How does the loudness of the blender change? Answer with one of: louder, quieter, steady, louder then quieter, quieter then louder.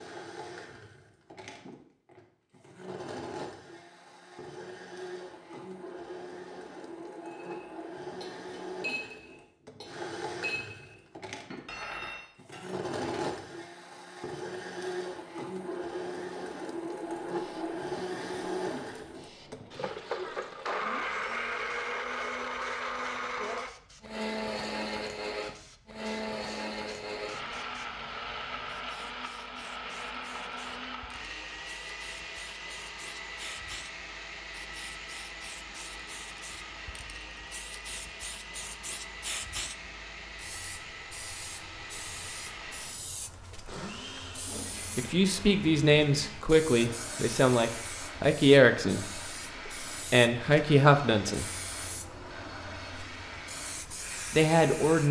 louder then quieter.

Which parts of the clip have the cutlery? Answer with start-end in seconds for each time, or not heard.
7.2-13.4.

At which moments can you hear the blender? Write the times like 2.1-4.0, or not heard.
0.0-55.0.